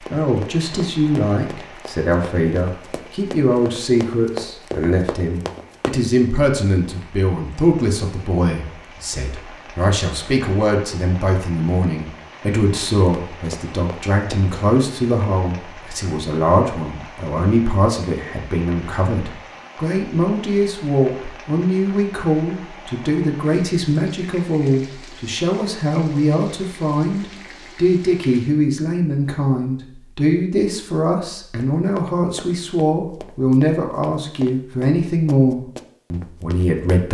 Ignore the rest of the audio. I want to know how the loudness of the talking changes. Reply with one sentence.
The loudness of the talking stays about the same.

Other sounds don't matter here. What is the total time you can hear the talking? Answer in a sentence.
The talking can be heard for 37 seconds in total.